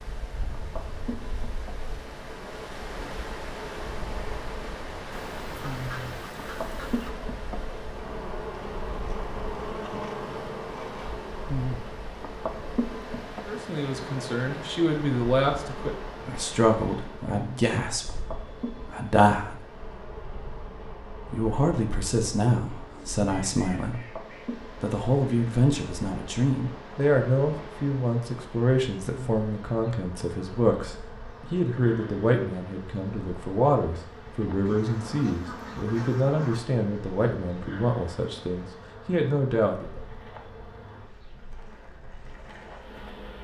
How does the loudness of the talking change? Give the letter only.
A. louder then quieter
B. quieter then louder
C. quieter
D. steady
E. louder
D.